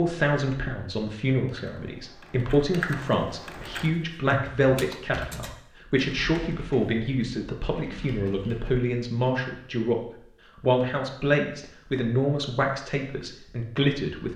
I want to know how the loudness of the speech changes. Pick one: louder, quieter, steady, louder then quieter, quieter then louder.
steady.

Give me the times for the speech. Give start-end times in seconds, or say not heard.
0.0-10.0, 10.6-14.3.